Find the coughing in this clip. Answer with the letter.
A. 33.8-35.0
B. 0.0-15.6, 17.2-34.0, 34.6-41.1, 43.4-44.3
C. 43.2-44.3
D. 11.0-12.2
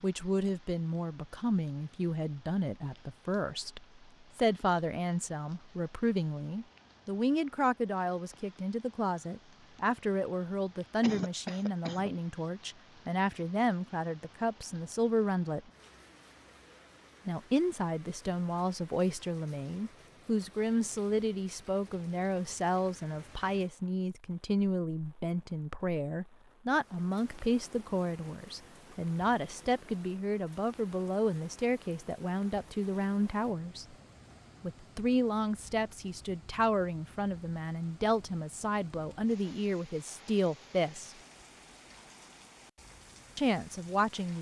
D.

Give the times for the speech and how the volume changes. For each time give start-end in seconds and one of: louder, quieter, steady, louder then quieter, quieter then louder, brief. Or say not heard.
0.0-15.6 steady
17.2-34.0 steady
34.6-41.1 steady
43.4-44.3 brief.